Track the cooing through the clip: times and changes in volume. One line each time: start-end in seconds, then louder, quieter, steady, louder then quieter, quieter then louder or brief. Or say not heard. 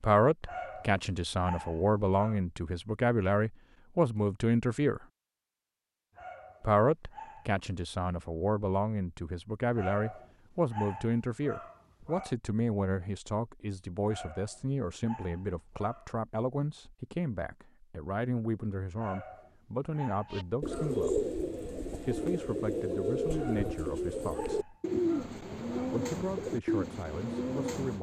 20.3-27.9 steady.